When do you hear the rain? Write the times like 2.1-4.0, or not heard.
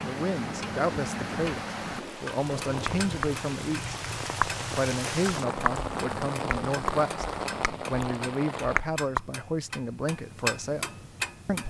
0.0-8.8.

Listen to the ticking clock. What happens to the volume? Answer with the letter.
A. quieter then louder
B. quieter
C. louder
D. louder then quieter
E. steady
E.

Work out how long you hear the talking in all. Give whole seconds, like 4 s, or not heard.
10 s.